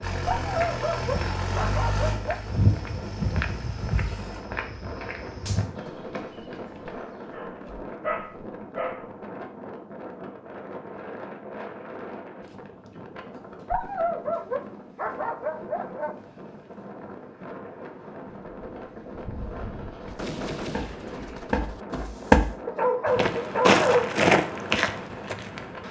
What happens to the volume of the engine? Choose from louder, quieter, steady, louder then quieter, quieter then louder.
quieter.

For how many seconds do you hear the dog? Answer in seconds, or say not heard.
8 s.